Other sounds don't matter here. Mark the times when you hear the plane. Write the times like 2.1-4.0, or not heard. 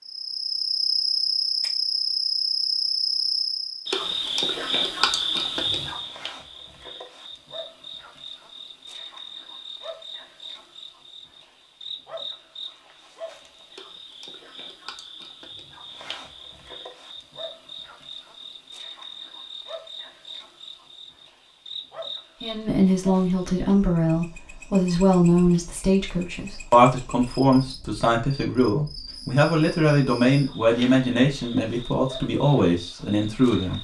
not heard.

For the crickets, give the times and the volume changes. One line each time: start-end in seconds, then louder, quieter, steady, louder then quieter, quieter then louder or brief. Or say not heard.
0.1-33.7 quieter.